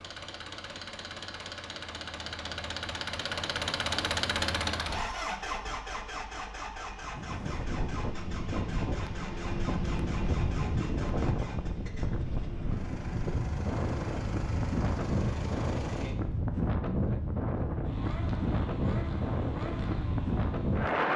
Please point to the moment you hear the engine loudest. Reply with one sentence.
The volume of the engine peaks at 4 seconds.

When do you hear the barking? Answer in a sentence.
You can't hear the barking here.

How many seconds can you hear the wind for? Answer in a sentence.
You can hear the wind for 14 seconds altogether.